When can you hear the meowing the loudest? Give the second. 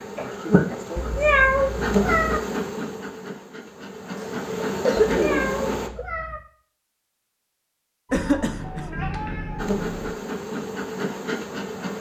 1 s.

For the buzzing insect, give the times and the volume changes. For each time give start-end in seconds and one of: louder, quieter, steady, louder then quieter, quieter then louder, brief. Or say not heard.
0.0-5.9 quieter then louder
9.6-11.9 brief.